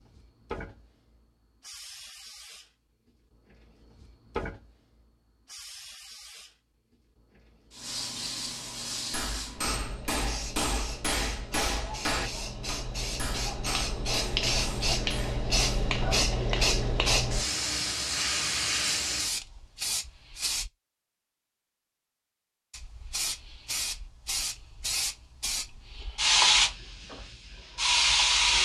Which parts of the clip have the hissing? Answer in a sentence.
The hissing can be heard from 0.0 to 20.7 s and from 22.7 to 28.6 s.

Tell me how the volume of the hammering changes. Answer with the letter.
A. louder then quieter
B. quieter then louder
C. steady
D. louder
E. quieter
E.